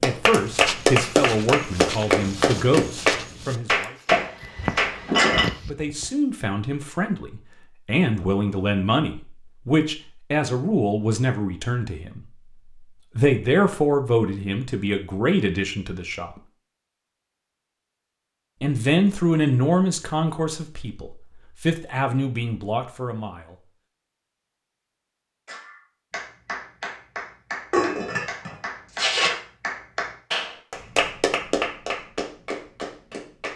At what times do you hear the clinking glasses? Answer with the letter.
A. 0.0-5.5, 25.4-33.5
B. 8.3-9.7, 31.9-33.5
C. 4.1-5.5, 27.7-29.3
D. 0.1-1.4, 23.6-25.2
C.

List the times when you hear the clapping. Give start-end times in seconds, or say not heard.
0.0-5.5, 25.4-33.5.